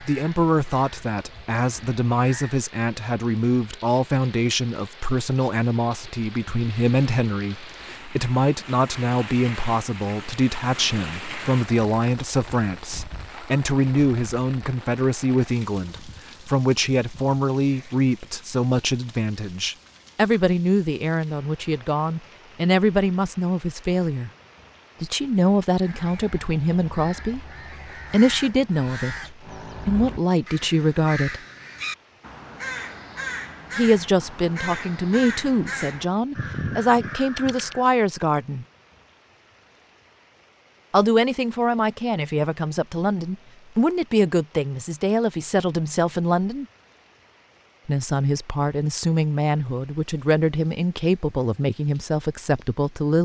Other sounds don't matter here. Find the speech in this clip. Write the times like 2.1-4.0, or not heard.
0.0-24.3, 25.0-27.4, 28.1-31.4, 33.8-38.6, 40.9-46.6, 47.9-53.1.